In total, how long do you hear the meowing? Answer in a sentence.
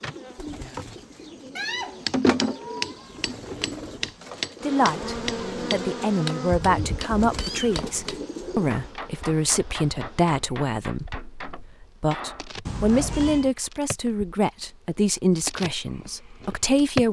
The meowing can be heard for 3 seconds in total.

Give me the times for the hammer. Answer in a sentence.
The hammer can be heard from 1.8 to 13.2 s.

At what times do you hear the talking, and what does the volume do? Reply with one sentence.
You can hear the talking from 4.6 to 17.0 s, at a steady volume.